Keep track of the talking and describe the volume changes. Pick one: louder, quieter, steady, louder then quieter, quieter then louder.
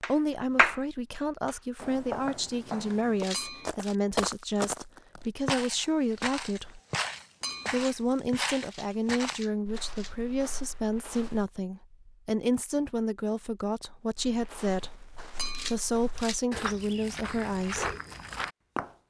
steady.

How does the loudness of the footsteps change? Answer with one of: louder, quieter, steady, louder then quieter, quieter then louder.
quieter then louder.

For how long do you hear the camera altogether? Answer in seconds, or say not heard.
3 s.